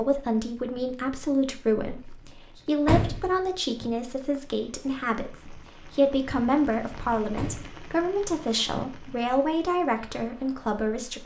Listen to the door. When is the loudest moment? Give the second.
3 s.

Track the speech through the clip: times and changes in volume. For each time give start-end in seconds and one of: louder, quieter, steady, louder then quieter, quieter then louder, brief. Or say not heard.
0.0-11.2 steady.